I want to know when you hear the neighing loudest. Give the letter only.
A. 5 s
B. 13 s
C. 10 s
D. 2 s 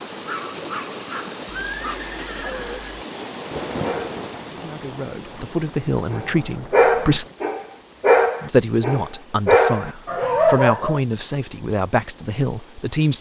D.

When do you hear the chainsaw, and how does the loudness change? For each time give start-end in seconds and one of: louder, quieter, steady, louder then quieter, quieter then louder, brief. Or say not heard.
not heard.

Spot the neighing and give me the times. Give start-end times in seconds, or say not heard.
1.4-3.0.